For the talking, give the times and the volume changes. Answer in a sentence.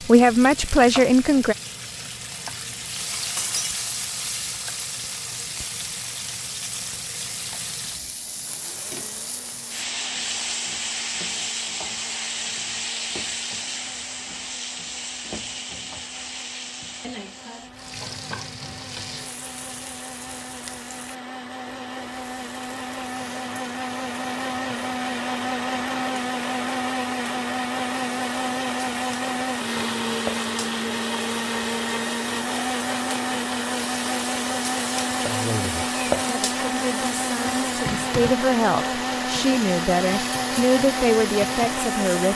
You can hear the talking briefly from 0.1 to 1.6 s; and from 35.1 to 42.3 s, getting louder.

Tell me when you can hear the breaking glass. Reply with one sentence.
The breaking glass can be heard from 3.4 to 3.8 s.